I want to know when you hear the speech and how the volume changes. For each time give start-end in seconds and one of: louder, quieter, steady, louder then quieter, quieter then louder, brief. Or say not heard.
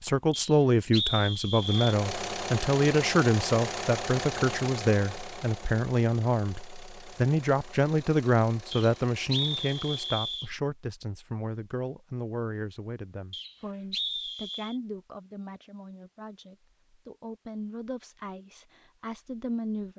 0.0-19.9 quieter.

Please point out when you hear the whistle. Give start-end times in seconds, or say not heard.
0.3-1.9, 8.7-10.5, 13.3-14.8.